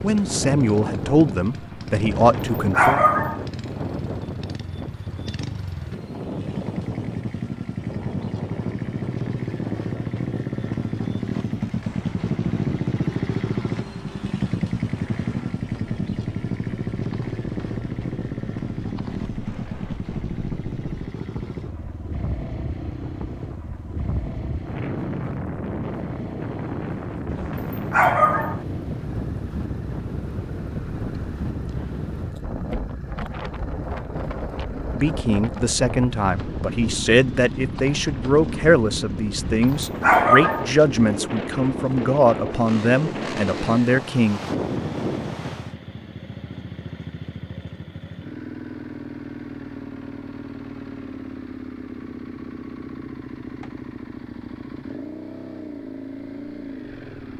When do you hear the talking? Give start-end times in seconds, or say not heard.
0.0-3.0, 34.9-44.4.